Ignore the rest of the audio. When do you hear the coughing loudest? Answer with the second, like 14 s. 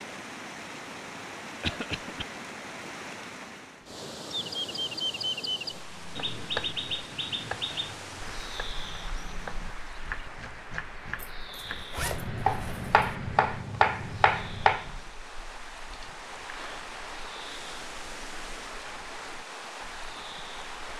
2 s.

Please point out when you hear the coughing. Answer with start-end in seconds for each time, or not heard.
1.6-2.2, 15.9-16.9.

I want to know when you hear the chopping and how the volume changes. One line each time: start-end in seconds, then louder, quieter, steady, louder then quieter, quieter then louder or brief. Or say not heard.
5.7-14.9 quieter then louder.